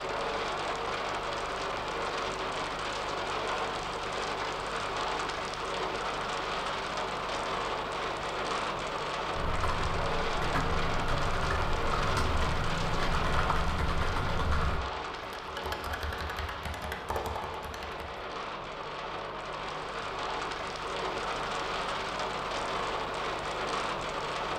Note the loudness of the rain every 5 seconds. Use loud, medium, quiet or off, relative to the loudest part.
loud, loud, loud, medium, loud.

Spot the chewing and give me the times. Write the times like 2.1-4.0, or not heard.
not heard.